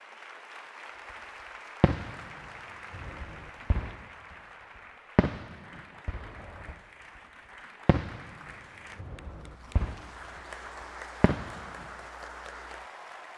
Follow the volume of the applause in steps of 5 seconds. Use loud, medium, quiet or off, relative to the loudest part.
loud, medium, loud.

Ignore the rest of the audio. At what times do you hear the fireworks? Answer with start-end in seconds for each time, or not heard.
1.8-2.3, 2.9-4.0, 5.2-6.8, 7.8-8.3, 8.9-10.1, 11.2-11.8.